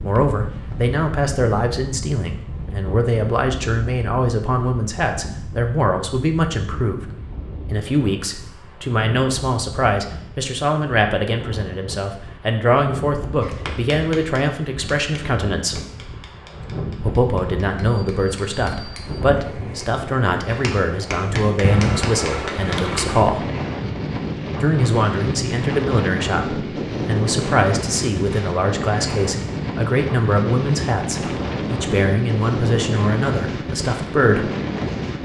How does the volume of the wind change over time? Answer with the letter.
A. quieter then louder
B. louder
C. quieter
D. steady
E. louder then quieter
B.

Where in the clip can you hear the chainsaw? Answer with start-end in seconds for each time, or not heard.
not heard.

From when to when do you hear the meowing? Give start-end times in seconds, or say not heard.
not heard.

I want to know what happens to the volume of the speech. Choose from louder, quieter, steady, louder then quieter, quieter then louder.
steady.